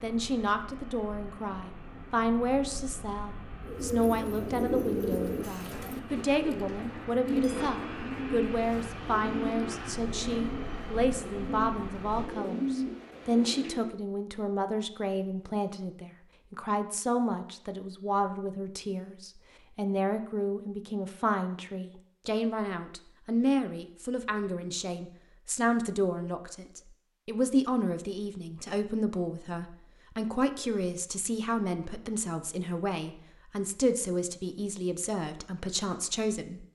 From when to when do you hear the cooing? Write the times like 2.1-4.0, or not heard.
3.6-13.9.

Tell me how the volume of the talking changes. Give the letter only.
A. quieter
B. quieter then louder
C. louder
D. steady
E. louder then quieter
D.